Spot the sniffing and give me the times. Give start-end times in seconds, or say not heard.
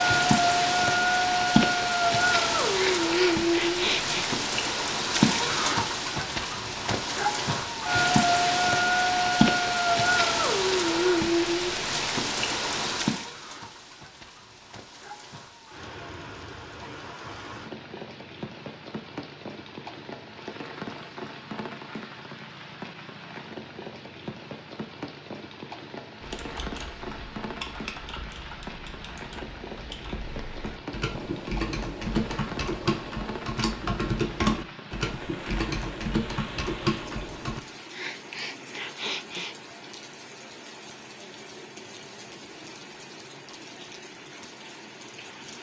2.7-4.3, 37.9-39.5.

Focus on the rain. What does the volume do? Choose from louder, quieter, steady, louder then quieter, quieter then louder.
quieter.